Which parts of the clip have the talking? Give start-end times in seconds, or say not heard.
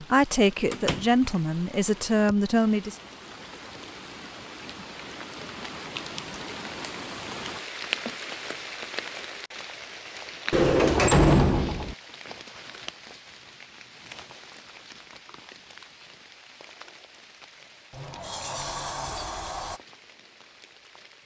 0.0-3.0.